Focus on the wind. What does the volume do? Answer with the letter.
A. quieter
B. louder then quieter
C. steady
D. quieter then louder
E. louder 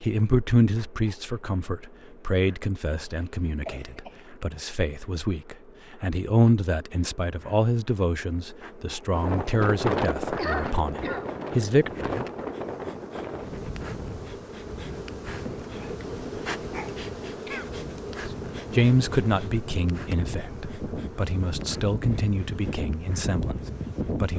D.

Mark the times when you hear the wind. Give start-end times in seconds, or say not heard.
9.1-24.3.